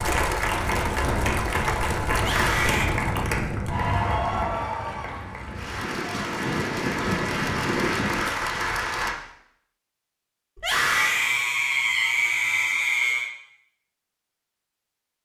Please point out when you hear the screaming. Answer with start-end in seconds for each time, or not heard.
2.1-2.9, 10.6-13.3.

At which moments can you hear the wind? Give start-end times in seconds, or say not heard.
0.0-8.2.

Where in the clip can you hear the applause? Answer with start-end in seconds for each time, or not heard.
0.0-9.2.